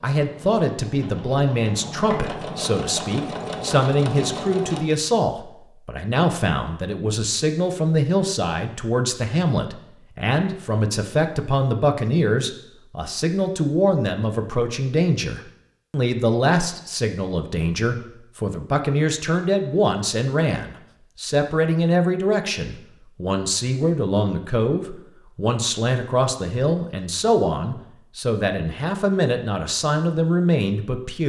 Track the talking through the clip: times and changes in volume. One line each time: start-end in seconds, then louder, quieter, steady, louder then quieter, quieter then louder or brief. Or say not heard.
0.0-31.2 steady.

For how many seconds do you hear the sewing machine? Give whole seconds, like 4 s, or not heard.
5 s.